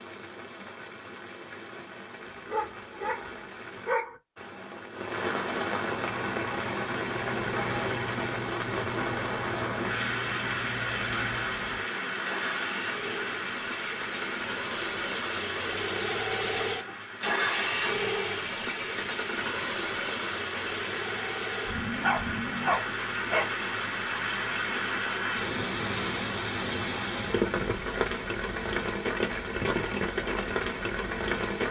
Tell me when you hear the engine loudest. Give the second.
18 s.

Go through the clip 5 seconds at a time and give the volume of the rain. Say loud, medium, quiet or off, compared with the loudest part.
quiet, loud, loud, medium, loud, loud, loud.